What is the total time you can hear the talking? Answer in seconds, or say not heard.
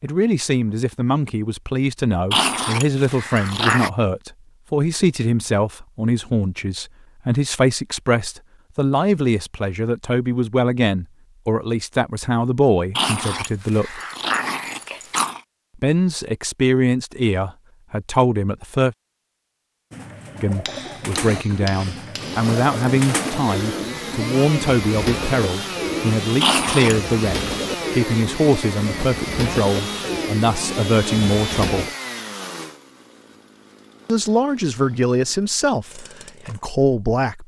32 s.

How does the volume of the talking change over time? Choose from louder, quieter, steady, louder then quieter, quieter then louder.
steady.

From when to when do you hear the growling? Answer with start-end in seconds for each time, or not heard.
2.3-3.9, 12.9-15.4, 26.4-27.1.